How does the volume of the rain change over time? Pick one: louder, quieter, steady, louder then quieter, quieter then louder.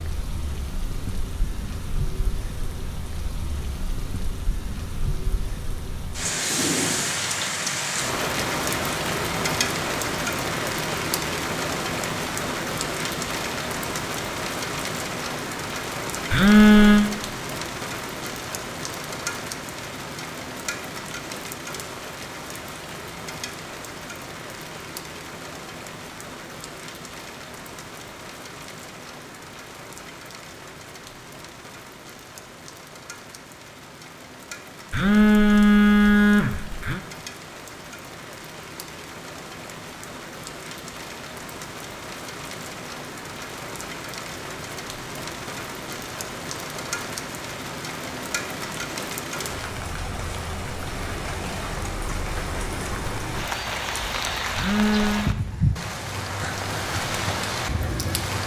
quieter then louder.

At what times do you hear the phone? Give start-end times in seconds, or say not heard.
16.3-17.1, 34.9-37.0, 54.5-55.3.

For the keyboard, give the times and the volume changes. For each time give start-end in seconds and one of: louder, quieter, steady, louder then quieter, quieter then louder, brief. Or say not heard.
not heard.